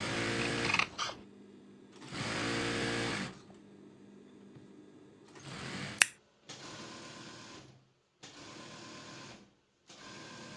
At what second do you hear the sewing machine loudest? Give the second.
3 s.